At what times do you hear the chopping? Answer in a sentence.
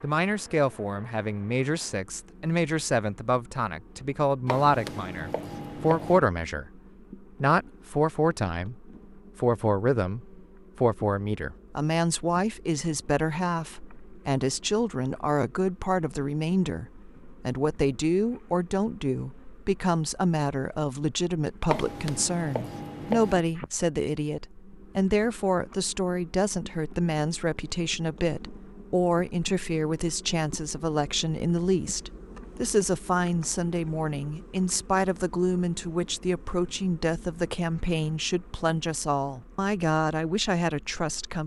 The chopping can be heard from 4.5 to 6.2 s and from 21.6 to 23.4 s.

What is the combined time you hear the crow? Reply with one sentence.
You can't hear the crow here.